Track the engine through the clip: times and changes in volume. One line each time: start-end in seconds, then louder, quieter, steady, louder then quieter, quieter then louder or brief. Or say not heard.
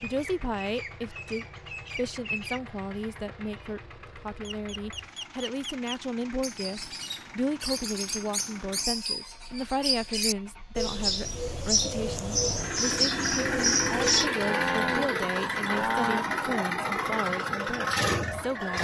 0.0-18.7 louder.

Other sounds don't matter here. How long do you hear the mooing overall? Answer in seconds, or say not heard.
2 s.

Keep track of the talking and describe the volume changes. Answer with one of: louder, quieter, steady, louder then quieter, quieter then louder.
steady.